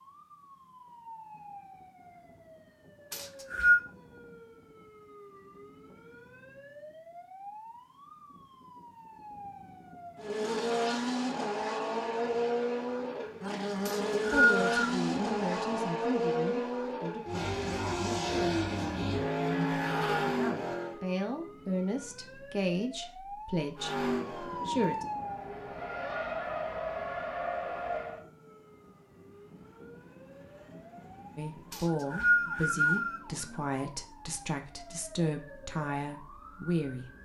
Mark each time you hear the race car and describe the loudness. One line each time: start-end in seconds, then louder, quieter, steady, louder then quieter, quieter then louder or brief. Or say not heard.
10.2-21.0 steady
23.8-28.2 quieter then louder.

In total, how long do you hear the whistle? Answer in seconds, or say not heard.
3 s.